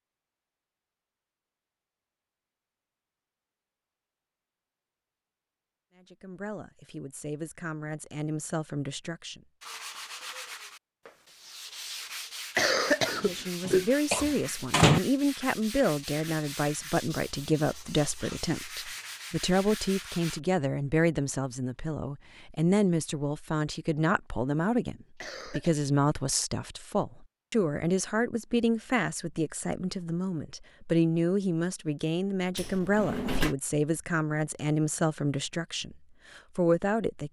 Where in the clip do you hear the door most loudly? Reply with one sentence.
The loudest moment of the door is at 15 seconds.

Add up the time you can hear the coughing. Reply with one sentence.
The coughing can be heard for 2 seconds in total.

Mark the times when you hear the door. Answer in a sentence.
You can hear the door from 13.2 to 15.0 s and from 32.5 to 33.5 s.